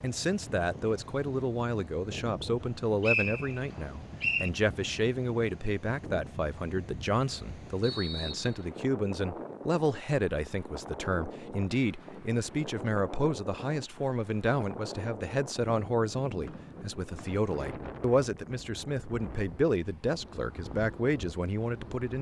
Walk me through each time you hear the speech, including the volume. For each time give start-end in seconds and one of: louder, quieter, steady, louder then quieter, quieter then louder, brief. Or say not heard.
0.0-22.1 steady.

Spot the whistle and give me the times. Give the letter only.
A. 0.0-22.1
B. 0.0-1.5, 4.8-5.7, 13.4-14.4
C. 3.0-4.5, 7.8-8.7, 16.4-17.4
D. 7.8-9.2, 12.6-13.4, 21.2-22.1
C.